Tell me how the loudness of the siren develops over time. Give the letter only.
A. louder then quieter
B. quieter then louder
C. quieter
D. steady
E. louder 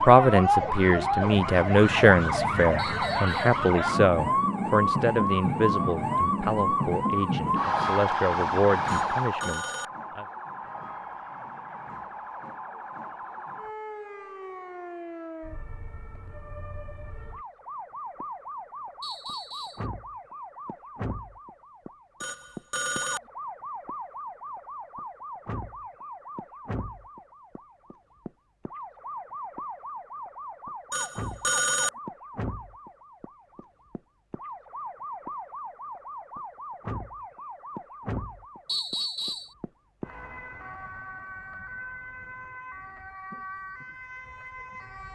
C.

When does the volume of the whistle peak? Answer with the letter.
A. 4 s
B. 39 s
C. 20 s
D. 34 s
B.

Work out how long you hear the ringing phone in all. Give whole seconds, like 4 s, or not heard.
3 s.